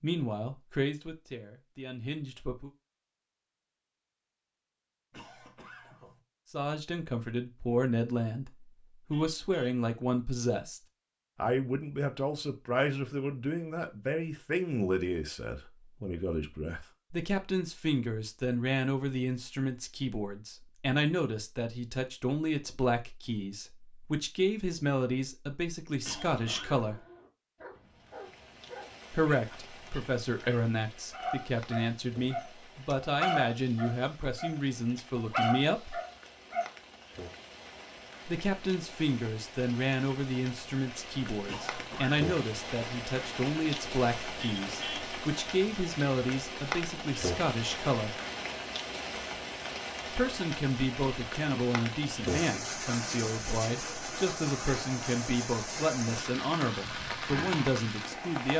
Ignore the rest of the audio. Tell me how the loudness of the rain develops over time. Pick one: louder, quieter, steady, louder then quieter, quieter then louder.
louder.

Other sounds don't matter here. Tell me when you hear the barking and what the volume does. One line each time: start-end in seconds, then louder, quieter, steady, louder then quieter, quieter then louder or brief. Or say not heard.
26.3-36.7 louder.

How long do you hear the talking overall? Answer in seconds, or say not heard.
48 s.